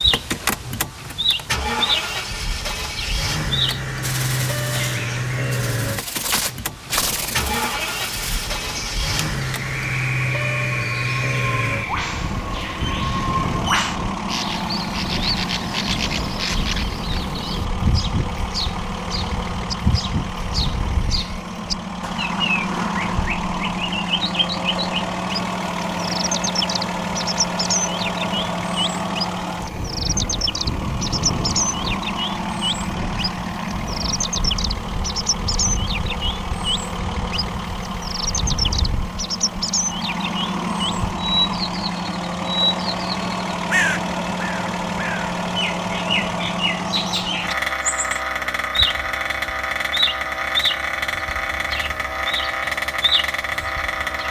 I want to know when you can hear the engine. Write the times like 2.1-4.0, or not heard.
0.0-54.2.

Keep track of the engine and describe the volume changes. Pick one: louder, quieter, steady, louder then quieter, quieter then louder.
steady.